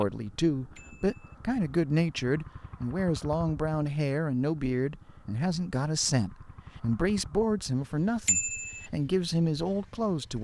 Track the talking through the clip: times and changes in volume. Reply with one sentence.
The talking can be heard from 0.0 to 10.3 s, at a steady volume.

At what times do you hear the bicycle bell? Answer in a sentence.
The bicycle bell can be heard from 0.8 to 1.4 s and from 8.2 to 8.9 s.